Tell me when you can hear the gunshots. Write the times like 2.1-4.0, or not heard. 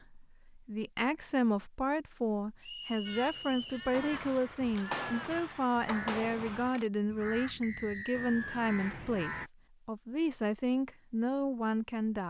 3.9-6.9.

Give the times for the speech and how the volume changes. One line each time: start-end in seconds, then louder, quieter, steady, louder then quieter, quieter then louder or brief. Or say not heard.
0.1-12.2 steady.